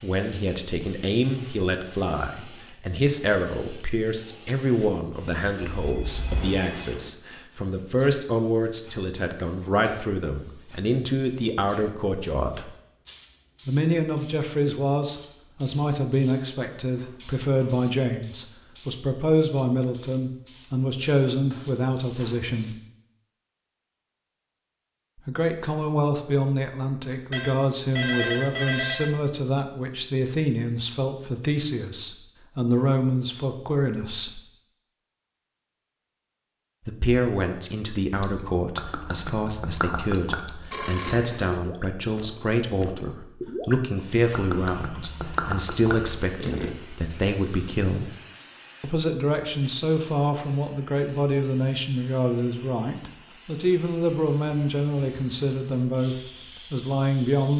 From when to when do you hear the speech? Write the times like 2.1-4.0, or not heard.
0.0-12.7, 13.7-22.8, 25.2-34.4, 36.9-48.1, 48.8-57.5.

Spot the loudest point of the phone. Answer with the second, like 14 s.
28 s.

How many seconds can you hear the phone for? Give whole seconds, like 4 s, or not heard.
4 s.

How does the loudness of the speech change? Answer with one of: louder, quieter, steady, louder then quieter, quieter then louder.
steady.